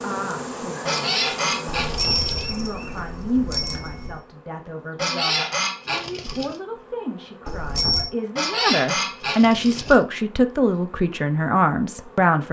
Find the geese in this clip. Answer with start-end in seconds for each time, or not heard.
0.8-2.5, 5.0-6.5, 8.3-10.0.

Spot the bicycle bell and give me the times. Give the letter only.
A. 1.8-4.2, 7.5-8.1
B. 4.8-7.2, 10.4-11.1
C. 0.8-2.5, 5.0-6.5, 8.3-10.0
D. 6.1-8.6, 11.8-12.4
A.